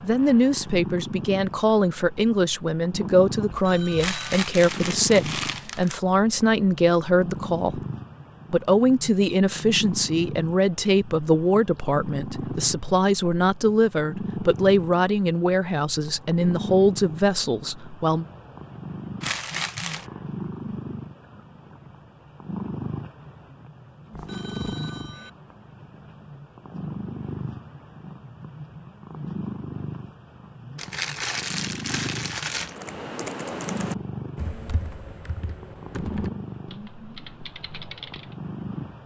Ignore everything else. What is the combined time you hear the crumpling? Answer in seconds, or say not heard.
5 s.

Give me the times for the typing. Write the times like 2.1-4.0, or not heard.
32.5-38.4.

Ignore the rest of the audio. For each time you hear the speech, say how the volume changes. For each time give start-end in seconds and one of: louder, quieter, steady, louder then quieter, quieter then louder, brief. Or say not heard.
0.0-7.8 steady
8.5-18.2 steady.